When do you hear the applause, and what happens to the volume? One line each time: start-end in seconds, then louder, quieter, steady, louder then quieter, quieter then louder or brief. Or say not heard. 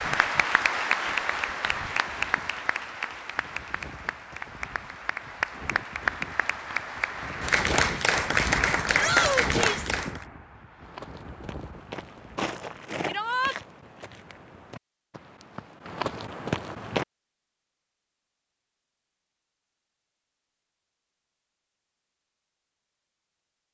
0.0-10.2 quieter then louder.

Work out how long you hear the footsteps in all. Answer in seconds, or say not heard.
6 s.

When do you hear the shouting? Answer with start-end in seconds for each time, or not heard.
8.9-9.9, 13.1-13.6.